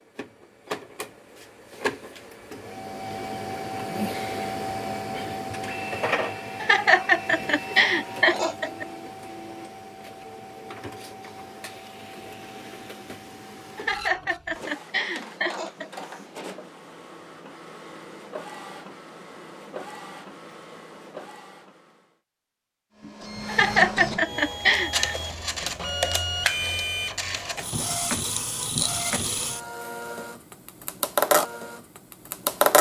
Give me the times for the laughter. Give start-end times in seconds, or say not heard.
6.2-8.8, 13.3-15.9, 23.1-24.9.